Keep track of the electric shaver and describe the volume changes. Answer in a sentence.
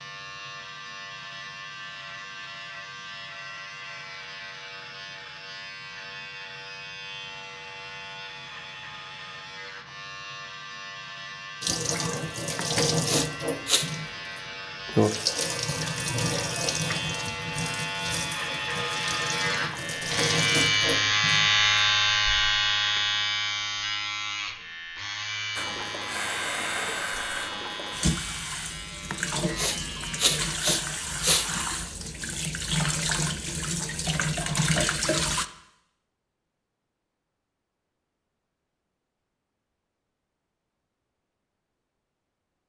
The loudness of the electric shaver goes up, then down.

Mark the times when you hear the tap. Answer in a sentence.
The tap can be heard from 11.6 to 21.9 s and from 25.6 to 35.5 s.